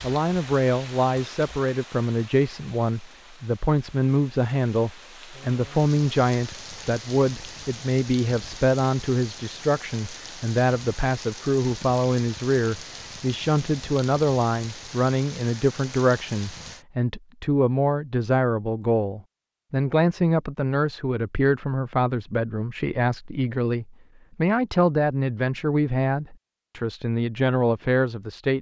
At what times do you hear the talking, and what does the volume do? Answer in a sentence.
The talking can be heard from 0.0 to 28.5 s, at a steady volume.